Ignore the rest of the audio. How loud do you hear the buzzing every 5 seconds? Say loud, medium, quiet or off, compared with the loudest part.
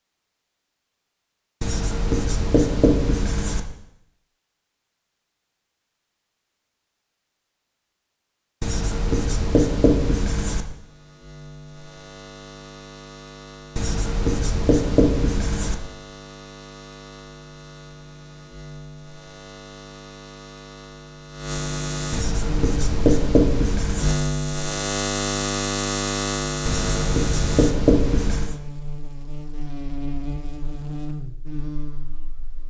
off, off, quiet, quiet, loud, loud, medium.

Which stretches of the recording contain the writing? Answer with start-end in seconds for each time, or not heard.
1.6-3.6, 8.6-10.7, 13.8-15.8, 22.1-24.1, 26.6-28.6.